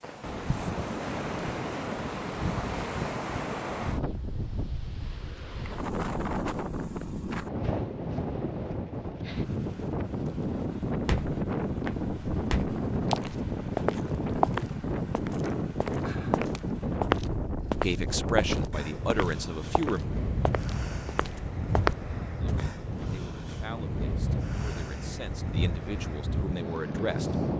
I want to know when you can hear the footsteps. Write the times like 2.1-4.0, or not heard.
11.0-22.6.